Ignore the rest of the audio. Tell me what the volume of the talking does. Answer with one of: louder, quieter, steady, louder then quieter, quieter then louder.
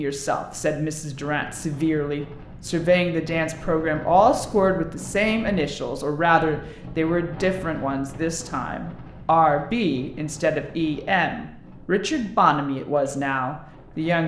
steady.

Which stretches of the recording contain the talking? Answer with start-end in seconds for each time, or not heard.
0.0-14.2.